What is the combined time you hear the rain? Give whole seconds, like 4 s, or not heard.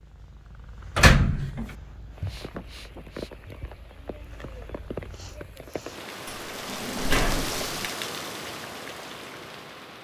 8 s.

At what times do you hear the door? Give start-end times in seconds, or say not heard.
0.9-1.6, 6.2-7.8.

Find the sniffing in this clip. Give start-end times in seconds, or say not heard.
2.2-3.3, 5.0-6.0.